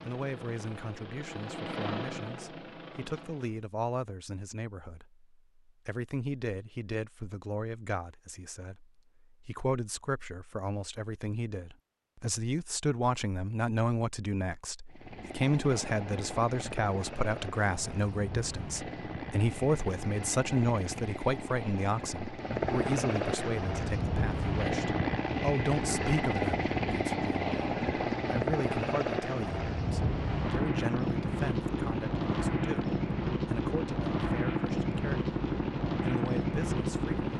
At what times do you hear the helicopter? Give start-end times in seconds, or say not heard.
0.0-3.6, 14.9-37.3.